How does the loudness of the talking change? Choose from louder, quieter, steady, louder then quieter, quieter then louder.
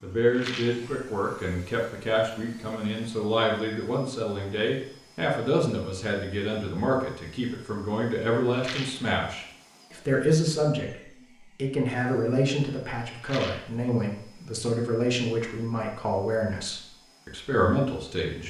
steady.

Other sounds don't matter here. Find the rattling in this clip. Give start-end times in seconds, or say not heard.
0.3-0.8, 8.6-9.1, 13.2-13.7.